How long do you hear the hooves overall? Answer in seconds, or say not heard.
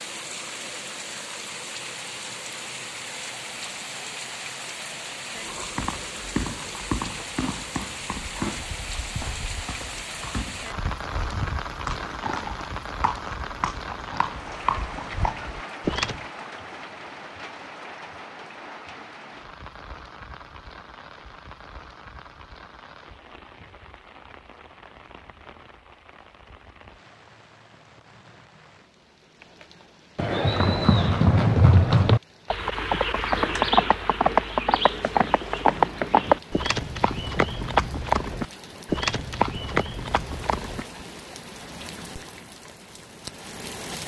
22 s.